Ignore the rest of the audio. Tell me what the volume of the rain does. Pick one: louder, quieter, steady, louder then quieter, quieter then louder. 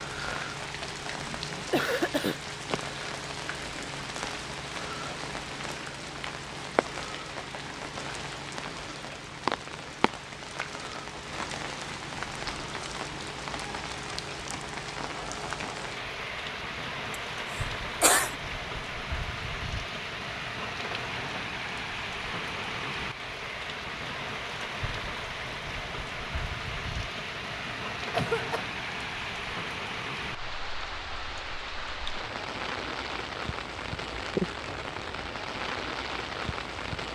steady.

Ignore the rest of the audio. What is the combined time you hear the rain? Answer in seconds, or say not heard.
37 s.